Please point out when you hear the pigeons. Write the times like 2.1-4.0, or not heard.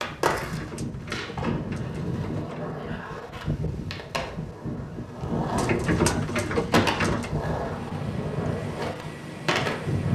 0.2-2.8, 5.5-7.3.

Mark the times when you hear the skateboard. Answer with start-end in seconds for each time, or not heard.
0.0-10.1.